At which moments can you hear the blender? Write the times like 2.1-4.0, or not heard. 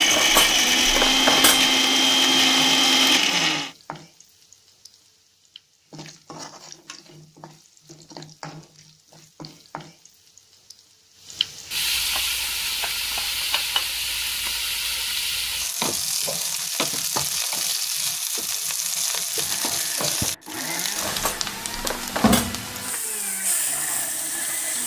0.0-3.7, 19.3-24.8.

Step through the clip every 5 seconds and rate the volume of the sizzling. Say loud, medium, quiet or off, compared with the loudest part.
quiet, quiet, loud, loud, loud.